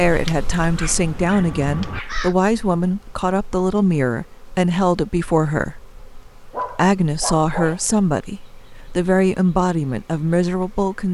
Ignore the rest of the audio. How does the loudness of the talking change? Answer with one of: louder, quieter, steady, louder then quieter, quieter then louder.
steady.